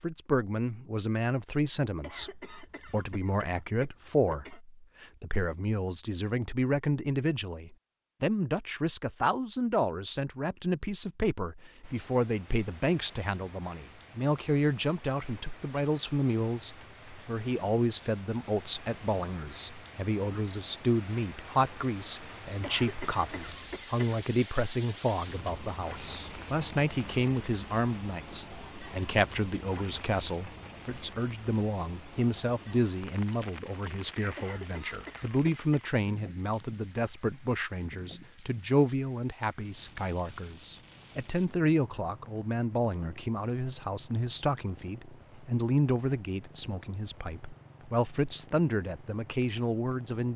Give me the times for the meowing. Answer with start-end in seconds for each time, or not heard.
not heard.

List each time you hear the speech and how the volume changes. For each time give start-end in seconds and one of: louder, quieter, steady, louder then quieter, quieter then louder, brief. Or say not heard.
0.0-50.3 steady.